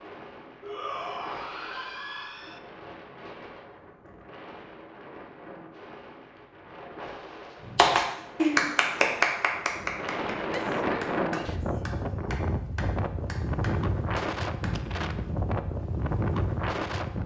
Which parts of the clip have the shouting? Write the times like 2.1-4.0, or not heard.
0.6-2.6, 10.4-11.8.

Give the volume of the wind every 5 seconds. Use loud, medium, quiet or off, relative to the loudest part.
quiet, quiet, loud, loud.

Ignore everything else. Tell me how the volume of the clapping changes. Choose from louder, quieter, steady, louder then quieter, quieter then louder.
quieter.